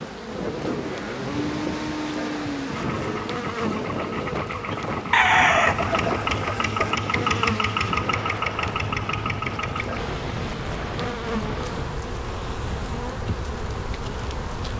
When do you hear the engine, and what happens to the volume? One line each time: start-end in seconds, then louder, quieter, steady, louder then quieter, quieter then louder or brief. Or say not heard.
2.7-14.7 louder then quieter.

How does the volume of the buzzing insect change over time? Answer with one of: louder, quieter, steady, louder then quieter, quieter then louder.
steady.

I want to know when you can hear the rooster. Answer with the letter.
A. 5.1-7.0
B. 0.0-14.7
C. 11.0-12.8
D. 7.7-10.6
A.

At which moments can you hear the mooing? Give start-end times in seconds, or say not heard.
0.5-3.4.